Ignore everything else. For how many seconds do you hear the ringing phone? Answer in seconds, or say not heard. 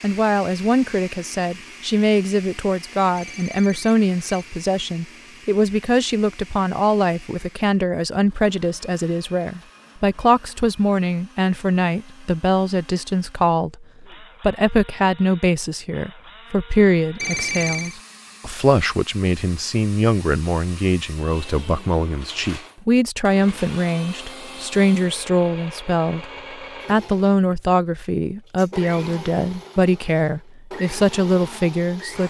2 s.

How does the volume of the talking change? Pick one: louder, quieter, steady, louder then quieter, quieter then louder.
steady.